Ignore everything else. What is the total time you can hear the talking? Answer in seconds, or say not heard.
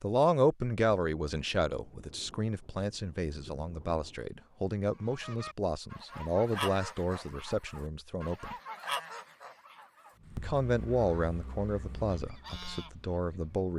12 s.